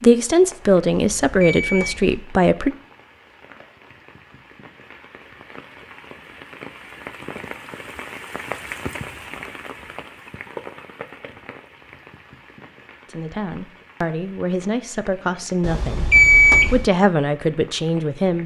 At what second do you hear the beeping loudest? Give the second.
16 s.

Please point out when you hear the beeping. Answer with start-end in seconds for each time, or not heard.
0.9-2.2, 15.6-16.9.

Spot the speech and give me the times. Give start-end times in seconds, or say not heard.
0.0-2.7, 13.1-16.1, 16.7-18.4.